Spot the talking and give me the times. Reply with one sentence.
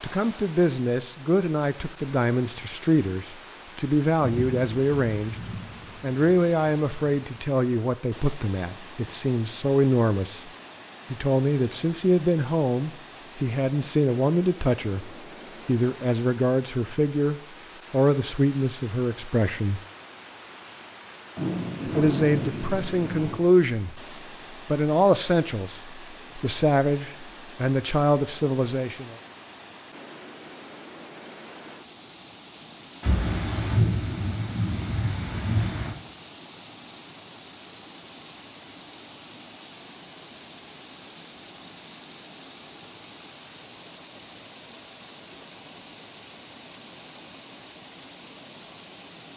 The talking can be heard from 0.0 to 5.3 s, from 6.0 to 10.5 s, from 11.1 to 19.8 s and from 21.9 to 29.1 s.